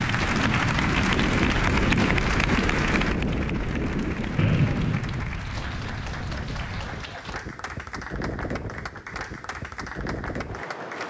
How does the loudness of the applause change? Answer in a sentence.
The loudness of the applause goes down.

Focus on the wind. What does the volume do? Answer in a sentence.
The loudness of the wind goes down.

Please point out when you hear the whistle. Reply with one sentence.
The whistle can be heard from 4.3 to 5.0 s.